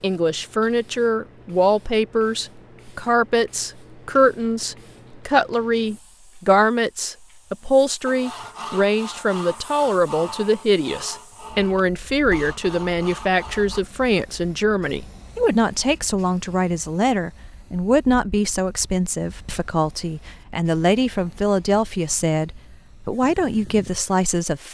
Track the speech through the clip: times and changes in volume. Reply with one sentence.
The speech can be heard from 0.0 to 24.6 s, at a steady volume.